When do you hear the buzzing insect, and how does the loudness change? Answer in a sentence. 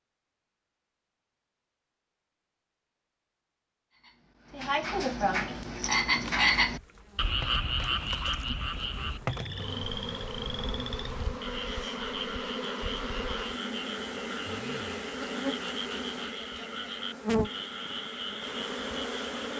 You can hear the buzzing insect from 5.5 to 19.5 s, getting louder.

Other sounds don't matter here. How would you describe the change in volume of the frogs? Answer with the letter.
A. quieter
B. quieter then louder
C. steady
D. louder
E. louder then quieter
A.